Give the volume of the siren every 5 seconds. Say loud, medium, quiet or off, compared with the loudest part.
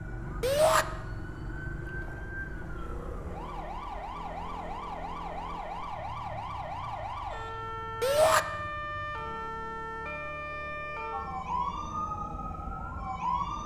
medium, loud, loud.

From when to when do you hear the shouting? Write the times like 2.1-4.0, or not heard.
0.4-0.8, 8.0-8.4.